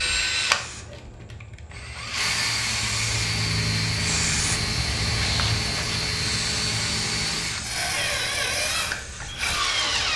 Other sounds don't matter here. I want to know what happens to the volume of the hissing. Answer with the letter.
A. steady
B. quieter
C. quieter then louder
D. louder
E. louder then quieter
E.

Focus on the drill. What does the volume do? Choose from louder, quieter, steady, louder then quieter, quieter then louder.
steady.